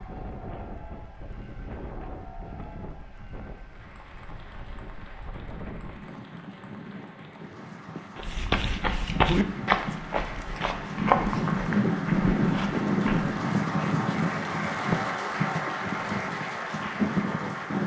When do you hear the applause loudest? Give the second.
15 s.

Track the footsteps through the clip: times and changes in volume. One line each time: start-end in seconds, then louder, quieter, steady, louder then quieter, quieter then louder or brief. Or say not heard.
8.2-13.3 quieter.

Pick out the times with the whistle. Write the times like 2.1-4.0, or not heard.
not heard.